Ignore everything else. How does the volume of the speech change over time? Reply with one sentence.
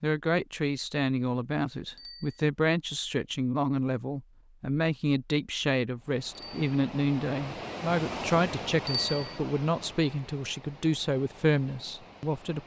The loudness of the speech stays about the same.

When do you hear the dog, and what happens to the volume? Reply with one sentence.
The dog can't be heard in this clip.